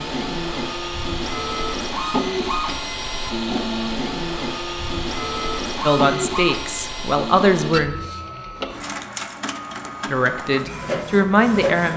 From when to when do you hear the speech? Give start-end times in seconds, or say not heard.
5.8-8.0, 10.1-11.9.